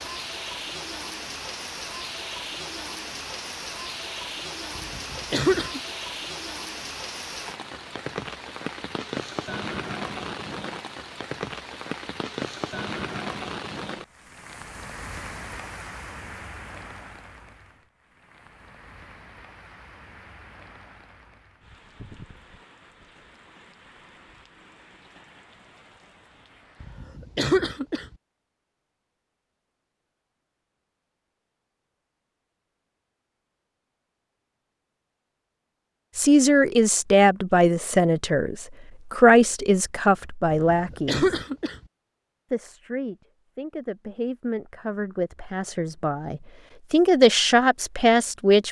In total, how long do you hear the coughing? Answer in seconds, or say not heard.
4 s.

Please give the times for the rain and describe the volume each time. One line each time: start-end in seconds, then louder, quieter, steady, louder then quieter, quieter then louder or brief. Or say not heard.
0.0-27.1 quieter.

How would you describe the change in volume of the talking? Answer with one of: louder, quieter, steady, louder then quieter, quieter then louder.
quieter then louder.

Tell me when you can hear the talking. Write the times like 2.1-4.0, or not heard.
36.1-41.4, 42.5-48.6.